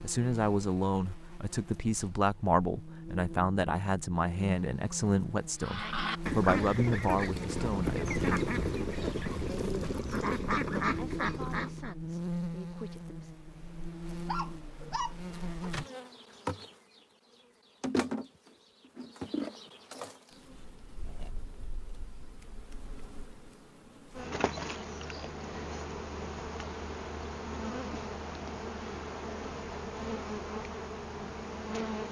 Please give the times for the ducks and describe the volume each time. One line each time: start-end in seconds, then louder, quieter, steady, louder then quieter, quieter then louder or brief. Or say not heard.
5.6-11.9 steady.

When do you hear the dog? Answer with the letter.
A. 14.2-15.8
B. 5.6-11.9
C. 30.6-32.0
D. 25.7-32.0
A.